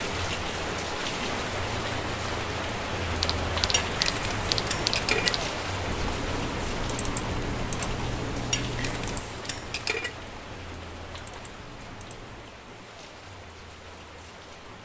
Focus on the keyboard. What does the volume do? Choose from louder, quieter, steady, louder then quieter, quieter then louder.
quieter.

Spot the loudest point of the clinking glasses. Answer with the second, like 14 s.
5 s.